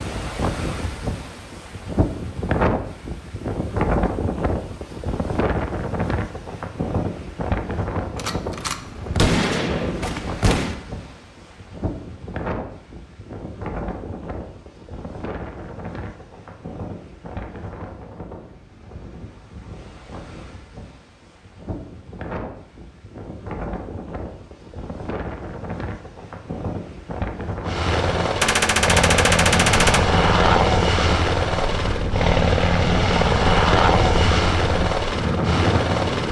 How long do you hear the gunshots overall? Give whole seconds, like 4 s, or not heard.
4 s.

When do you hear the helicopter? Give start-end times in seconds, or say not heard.
27.6-36.2.